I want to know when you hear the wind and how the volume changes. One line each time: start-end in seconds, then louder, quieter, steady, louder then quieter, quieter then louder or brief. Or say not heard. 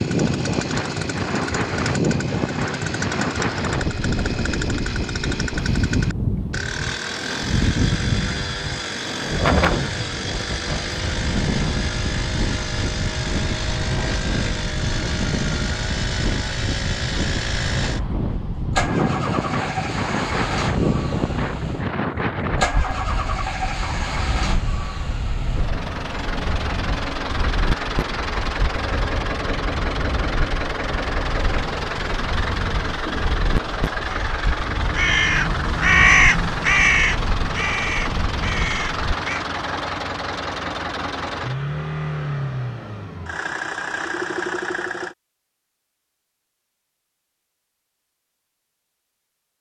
0.0-39.1 quieter.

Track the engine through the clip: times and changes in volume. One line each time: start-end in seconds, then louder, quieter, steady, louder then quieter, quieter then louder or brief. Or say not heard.
0.0-45.1 steady.